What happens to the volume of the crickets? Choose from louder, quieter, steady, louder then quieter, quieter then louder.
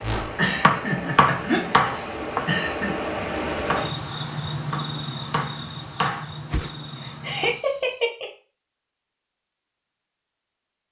louder then quieter.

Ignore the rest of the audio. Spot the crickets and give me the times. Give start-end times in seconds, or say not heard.
0.0-8.1.